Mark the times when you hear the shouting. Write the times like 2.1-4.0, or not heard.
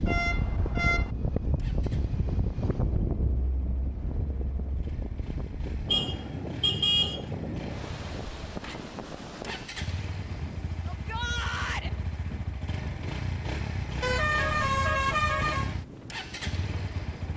10.8-11.9.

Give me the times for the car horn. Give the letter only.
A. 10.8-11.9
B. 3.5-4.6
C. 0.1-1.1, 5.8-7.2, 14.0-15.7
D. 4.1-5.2
C.